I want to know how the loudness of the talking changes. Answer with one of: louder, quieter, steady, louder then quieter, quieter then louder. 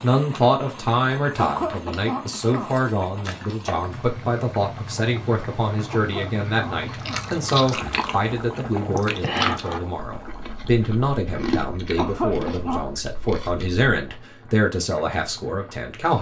steady.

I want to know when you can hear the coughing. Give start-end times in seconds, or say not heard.
1.4-2.8, 5.9-7.3, 11.9-12.8.